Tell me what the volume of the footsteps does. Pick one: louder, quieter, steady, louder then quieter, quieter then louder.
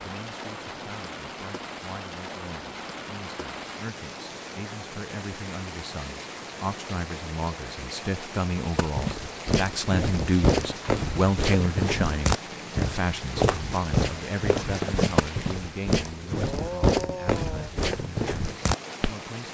steady.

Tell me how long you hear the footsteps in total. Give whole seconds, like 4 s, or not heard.
10 s.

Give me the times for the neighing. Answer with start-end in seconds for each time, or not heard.
not heard.